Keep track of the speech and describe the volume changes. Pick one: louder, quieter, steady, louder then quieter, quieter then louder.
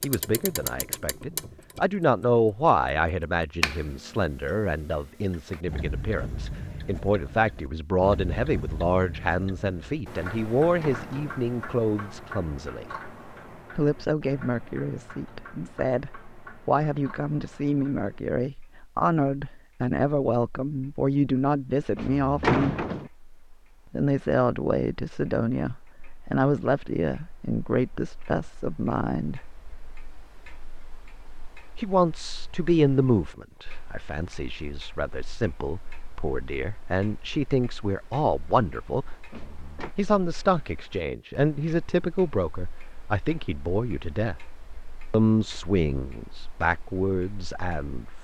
steady.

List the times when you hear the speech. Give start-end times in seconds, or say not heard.
0.0-12.8, 13.8-22.9, 23.9-29.4, 31.8-39.1, 40.0-44.4, 45.1-48.2.